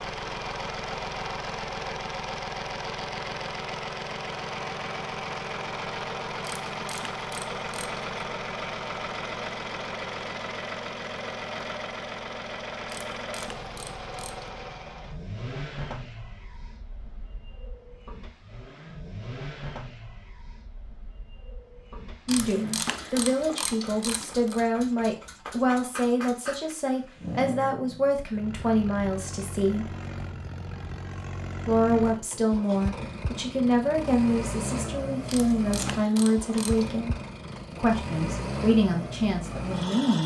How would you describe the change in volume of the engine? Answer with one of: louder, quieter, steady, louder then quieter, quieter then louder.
quieter then louder.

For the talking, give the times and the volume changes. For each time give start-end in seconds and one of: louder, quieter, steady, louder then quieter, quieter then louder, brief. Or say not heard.
22.2-29.9 steady
31.6-40.2 steady.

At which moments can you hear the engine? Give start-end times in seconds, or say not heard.
0.0-40.2.